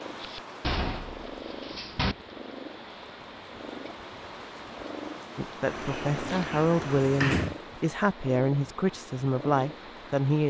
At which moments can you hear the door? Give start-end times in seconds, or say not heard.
0.6-2.1, 5.7-7.5.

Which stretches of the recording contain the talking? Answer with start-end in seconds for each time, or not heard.
5.3-10.4.